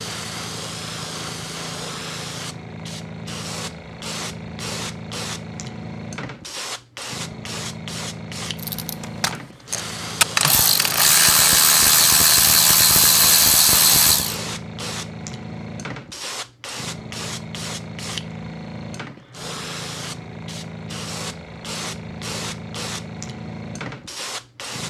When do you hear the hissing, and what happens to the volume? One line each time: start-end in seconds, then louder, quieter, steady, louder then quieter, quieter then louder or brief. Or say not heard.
0.0-24.8 steady.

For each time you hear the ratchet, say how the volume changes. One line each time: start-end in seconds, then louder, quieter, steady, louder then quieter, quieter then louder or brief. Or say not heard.
8.6-14.3 louder.